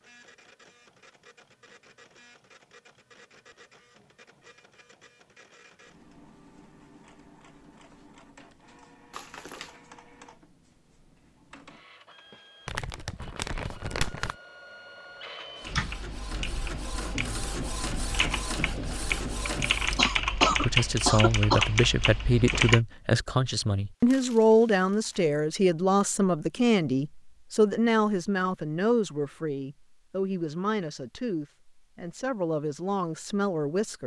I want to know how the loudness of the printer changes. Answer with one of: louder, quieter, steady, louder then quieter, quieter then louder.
louder.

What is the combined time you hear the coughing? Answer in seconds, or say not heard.
2 s.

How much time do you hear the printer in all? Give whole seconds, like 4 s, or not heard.
20 s.